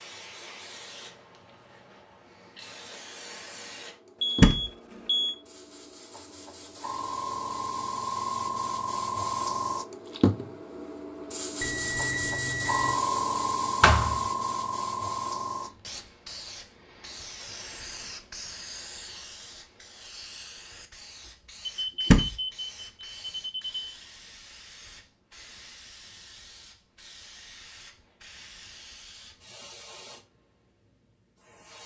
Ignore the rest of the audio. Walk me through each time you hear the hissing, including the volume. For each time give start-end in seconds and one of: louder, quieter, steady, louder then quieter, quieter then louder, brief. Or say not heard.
0.0-30.4 louder then quieter
31.4-31.8 brief.